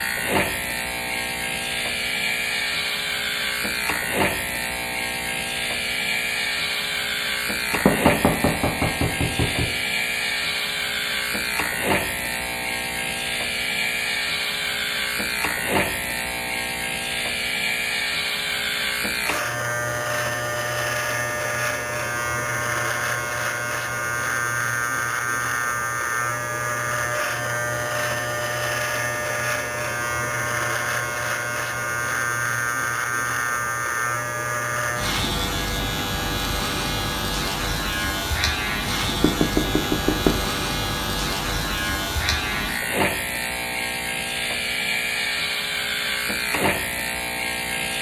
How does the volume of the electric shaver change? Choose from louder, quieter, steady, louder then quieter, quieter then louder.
steady.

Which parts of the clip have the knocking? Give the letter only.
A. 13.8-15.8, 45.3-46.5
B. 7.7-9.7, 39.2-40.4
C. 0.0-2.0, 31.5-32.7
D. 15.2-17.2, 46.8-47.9
B.